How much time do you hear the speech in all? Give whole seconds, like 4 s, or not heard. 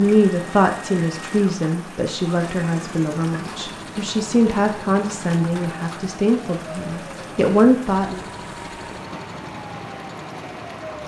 8 s.